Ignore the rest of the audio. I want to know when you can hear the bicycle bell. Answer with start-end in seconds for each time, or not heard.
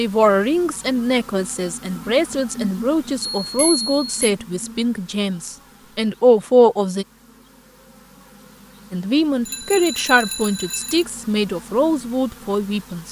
3.4-4.3, 9.4-11.1.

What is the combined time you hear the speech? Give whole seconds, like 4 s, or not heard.
11 s.